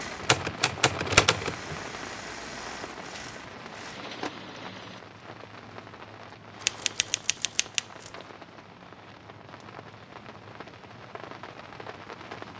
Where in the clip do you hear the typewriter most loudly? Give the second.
1 s.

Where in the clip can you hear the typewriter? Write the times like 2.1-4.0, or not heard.
0.2-1.9, 6.6-8.1.